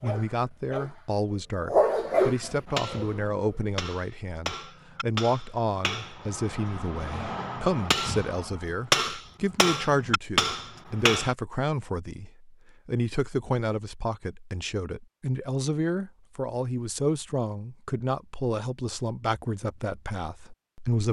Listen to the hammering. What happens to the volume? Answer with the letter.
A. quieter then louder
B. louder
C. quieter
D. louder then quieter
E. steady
B.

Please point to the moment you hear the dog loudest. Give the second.
2 s.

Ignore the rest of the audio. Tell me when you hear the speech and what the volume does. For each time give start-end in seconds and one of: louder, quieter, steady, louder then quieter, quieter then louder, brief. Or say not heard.
0.0-21.0 steady.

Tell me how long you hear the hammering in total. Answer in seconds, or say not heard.
9 s.